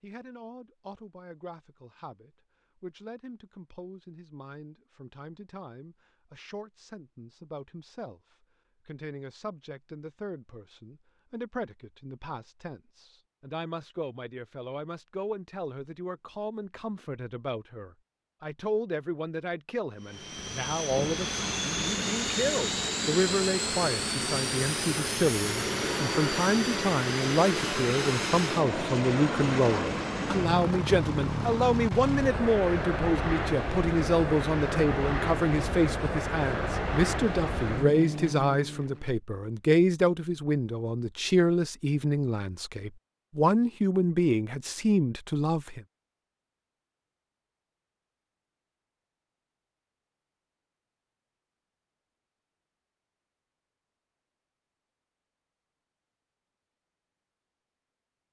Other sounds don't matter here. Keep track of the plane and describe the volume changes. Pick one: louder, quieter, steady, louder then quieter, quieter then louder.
steady.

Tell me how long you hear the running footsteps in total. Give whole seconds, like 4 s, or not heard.
not heard.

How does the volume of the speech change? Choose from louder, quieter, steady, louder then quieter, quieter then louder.
louder.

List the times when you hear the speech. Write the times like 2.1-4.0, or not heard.
0.0-45.8.